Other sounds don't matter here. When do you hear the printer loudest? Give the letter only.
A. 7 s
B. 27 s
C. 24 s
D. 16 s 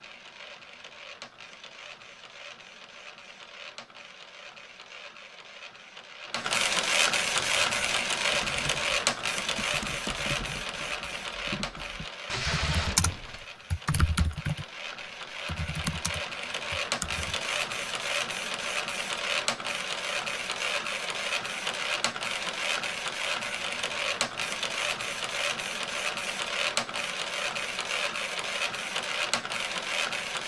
A.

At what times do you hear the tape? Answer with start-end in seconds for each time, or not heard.
12.2-13.4.